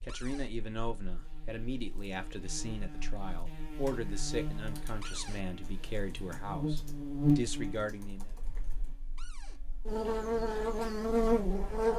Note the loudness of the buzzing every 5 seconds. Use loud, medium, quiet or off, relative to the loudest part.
quiet, medium, loud.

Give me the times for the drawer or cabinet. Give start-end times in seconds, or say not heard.
0.1-0.5, 5.0-5.5, 9.2-9.6.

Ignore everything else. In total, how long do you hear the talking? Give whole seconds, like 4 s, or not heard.
8 s.